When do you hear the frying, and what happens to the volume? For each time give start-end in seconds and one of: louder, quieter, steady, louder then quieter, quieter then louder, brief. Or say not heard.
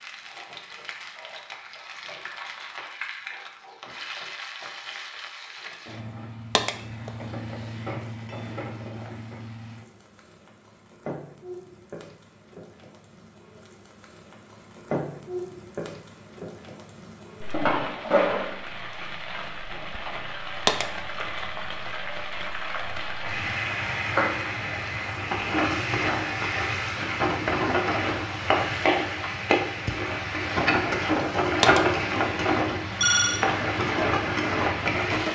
0.0-35.2 louder.